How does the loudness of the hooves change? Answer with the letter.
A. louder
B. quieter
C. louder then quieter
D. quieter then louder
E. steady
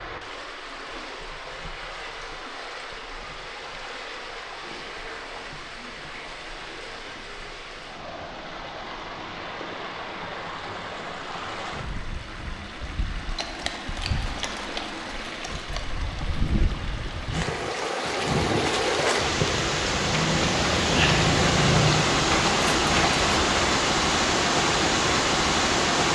A.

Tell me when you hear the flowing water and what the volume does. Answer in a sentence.
You can hear the flowing water from 0.0 to 26.0 s, getting louder.